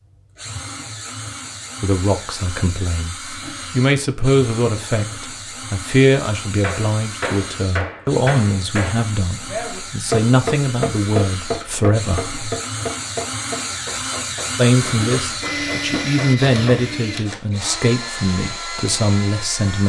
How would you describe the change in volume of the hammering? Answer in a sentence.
The volume of the hammering goes down.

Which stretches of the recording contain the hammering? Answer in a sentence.
The hammering can be heard from 6.6 to 16.9 s.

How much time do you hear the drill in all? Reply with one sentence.
The drill can be heard for 20 seconds in total.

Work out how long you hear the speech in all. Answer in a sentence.
The speech can be heard for 16 seconds in total.